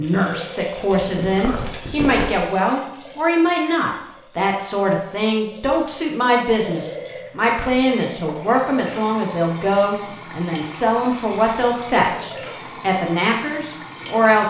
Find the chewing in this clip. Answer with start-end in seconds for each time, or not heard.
1.0-2.4.